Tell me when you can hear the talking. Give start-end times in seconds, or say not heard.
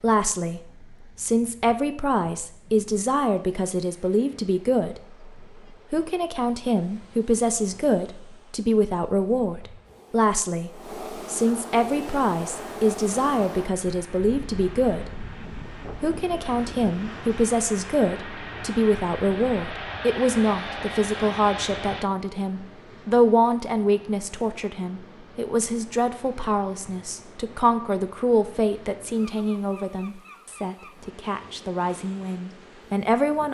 0.0-5.0, 5.9-10.7, 11.3-15.1, 16.0-33.4.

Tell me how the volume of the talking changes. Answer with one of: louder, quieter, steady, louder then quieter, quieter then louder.
steady.